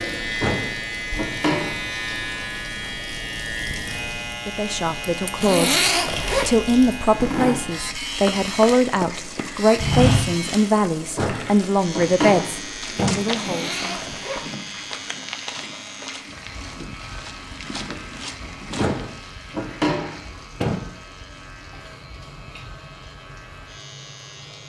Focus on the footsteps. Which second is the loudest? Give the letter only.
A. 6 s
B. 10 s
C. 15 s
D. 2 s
B.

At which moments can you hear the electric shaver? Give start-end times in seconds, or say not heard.
0.0-24.6.